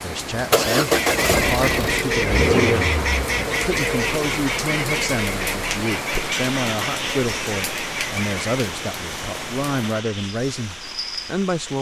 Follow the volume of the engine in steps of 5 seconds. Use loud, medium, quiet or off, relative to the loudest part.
loud, medium, quiet.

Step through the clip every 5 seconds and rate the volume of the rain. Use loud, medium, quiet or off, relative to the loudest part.
loud, loud, medium.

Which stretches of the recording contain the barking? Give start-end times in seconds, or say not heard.
not heard.